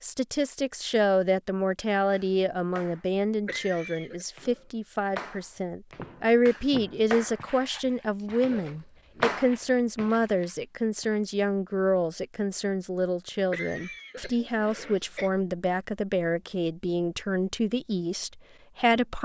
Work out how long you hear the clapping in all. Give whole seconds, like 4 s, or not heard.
6 s.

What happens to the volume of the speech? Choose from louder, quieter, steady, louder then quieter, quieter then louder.
steady.